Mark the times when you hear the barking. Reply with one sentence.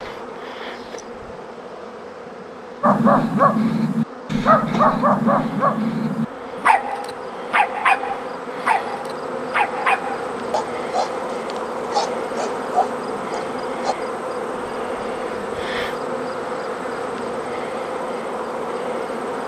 The barking can be heard from 2.8 to 13.9 s.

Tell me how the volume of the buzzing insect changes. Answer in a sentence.
The volume of the buzzing insect goes up.